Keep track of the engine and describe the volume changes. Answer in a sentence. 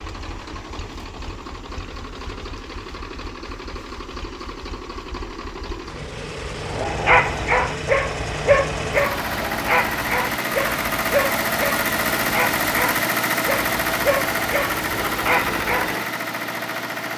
The volume of the engine goes up.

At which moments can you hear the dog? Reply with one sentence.
The dog can be heard from 6.6 to 15.9 s.